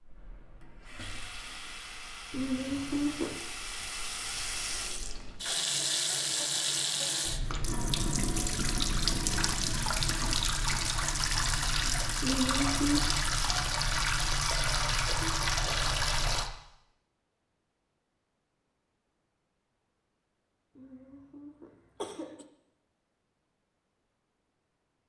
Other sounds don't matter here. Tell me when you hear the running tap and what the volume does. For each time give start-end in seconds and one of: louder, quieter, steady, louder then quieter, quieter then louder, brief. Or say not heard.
0.0-16.5 louder.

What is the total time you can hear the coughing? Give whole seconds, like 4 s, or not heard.
4 s.